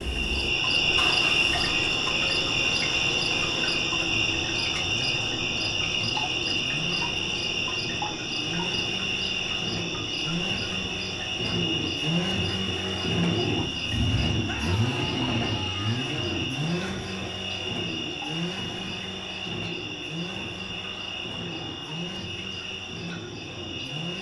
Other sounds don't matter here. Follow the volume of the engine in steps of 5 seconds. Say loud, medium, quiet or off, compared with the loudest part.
medium, medium, loud, loud, medium.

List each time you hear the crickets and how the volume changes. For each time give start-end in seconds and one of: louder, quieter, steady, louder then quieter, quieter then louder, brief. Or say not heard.
0.0-24.1 quieter.